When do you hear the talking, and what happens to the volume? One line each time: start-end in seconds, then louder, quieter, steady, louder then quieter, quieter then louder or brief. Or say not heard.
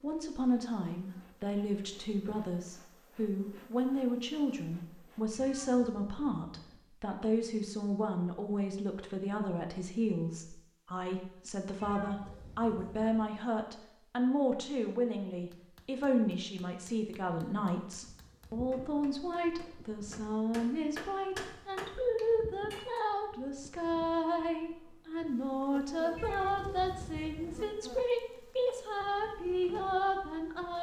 0.0-30.7 steady.